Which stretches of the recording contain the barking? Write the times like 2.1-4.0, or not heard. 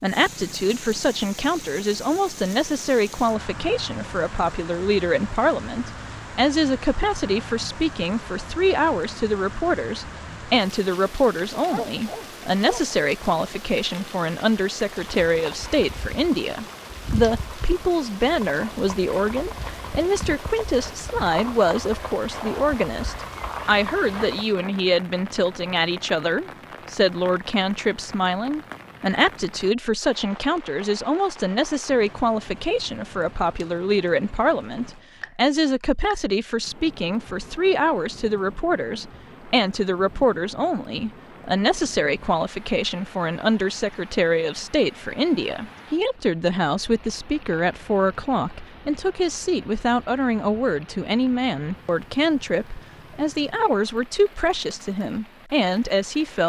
11.6-12.8.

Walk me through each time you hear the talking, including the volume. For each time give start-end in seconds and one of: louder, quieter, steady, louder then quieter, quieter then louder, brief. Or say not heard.
0.0-56.4 steady.